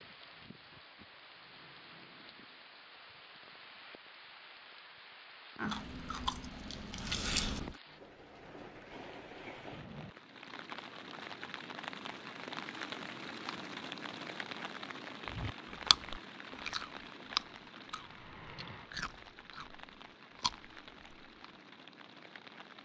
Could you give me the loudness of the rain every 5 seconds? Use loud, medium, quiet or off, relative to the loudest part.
medium, medium, loud, loud, medium.